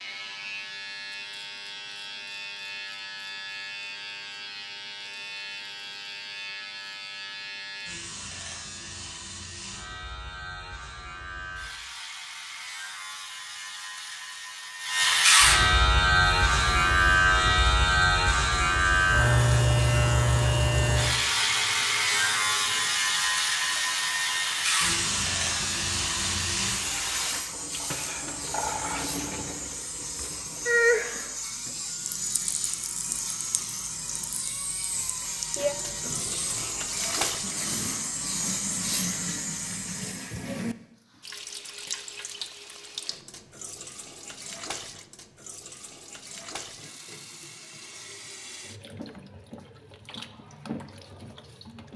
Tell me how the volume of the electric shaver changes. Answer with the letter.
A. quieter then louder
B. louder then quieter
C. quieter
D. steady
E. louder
B.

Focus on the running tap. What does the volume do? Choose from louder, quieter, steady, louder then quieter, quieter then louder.
louder then quieter.